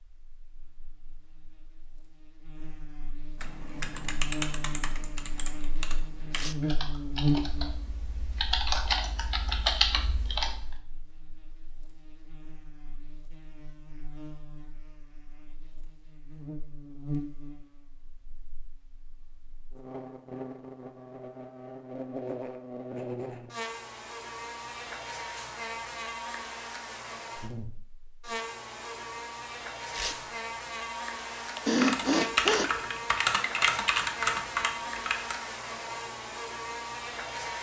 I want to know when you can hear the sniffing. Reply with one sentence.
You can hear the sniffing from 31.6 to 32.7 s.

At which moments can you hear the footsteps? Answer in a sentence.
You can't hear the footsteps here.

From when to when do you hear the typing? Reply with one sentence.
You can hear the typing from 3.4 to 10.8 s and from 31.7 to 35.4 s.